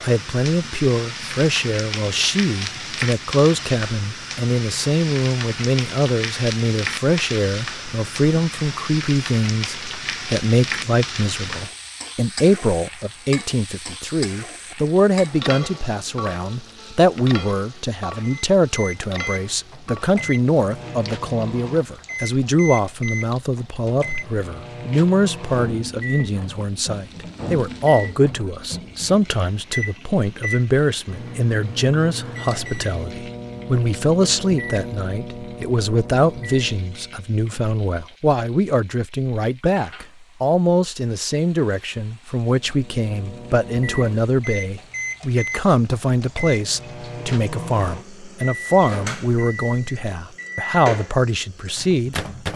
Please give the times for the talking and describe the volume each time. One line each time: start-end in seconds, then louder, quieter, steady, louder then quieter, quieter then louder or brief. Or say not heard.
0.0-52.2 steady.